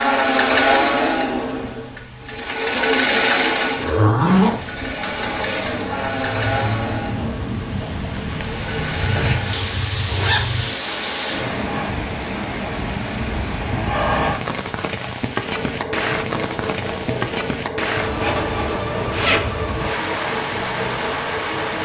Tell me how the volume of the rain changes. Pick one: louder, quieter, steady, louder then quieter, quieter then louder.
louder.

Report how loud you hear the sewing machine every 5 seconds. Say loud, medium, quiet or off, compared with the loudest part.
loud, medium, medium, medium, medium.